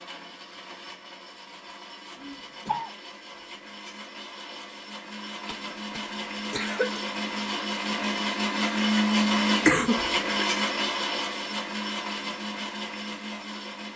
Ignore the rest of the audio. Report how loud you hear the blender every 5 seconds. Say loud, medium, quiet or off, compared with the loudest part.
quiet, loud, loud.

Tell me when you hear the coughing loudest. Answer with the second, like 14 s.
10 s.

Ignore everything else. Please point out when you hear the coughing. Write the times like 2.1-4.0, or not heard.
2.1-2.9, 5.5-7.0, 9.7-10.4.